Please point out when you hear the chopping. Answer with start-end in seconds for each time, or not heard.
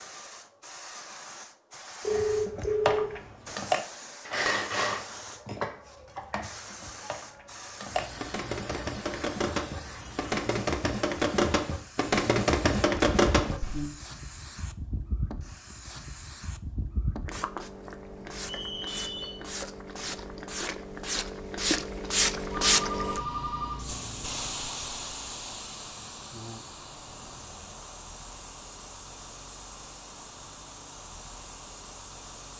2.1-13.9.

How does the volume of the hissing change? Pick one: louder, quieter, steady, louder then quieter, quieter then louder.
louder then quieter.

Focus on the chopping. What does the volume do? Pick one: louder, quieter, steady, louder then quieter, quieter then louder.
quieter then louder.